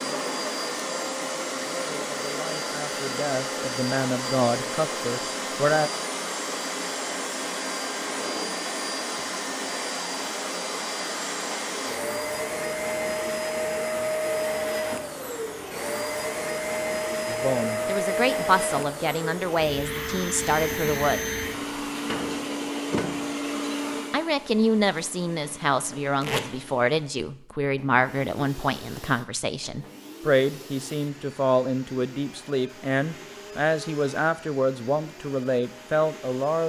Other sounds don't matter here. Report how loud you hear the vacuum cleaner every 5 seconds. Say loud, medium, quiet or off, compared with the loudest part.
loud, loud, loud, loud, loud, quiet, quiet, quiet.